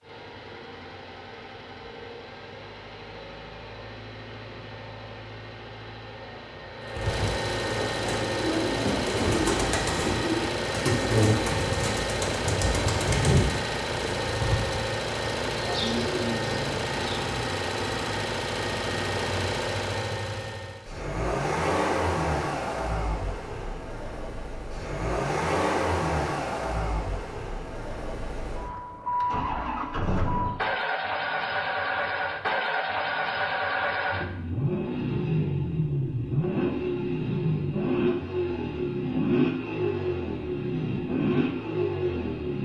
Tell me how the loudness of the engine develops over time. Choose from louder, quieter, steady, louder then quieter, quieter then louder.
louder.